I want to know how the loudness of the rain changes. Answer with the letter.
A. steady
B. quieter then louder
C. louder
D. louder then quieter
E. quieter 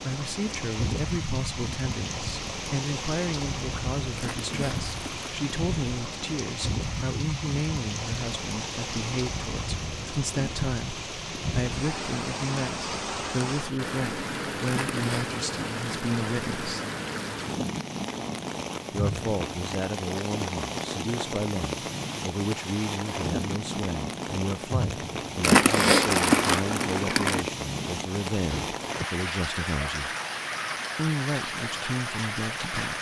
A.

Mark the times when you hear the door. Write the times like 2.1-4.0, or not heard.
28.4-28.8.